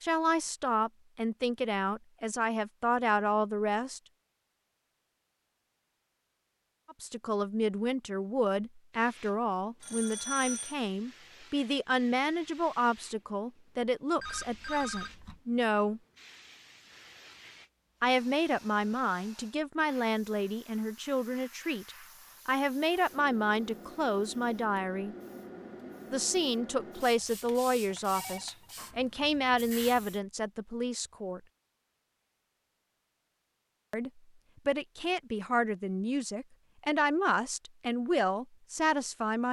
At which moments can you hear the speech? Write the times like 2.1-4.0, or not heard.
0.0-4.0, 6.9-16.0, 18.0-25.1, 26.1-31.4, 33.9-39.4.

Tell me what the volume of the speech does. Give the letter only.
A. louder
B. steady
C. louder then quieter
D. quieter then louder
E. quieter
B.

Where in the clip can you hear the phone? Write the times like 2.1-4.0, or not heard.
9.8-10.8, 14.2-15.4, 27.9-28.7.